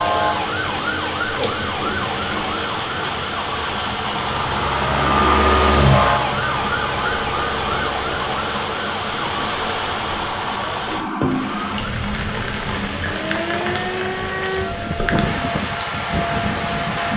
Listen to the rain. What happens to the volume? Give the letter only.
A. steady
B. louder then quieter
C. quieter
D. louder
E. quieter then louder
A.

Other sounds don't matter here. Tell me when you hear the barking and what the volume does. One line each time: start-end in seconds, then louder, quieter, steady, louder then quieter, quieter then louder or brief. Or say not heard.
not heard.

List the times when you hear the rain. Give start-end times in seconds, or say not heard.
0.0-17.1.